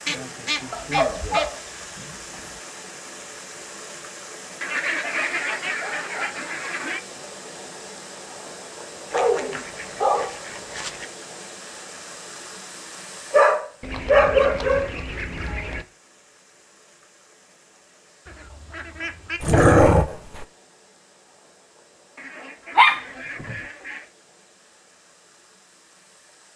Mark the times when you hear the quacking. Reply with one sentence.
You can hear the quacking from 0.1 to 1.5 s, from 4.6 to 7.0 s, from 9.1 to 11.1 s, from 13.8 to 15.8 s, from 18.2 to 19.4 s and from 22.1 to 24.1 s.